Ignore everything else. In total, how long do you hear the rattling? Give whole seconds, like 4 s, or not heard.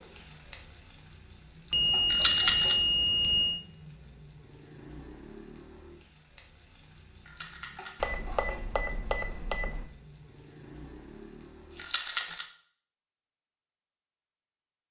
2 s.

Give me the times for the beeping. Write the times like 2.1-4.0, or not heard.
1.7-3.6, 8.0-9.8.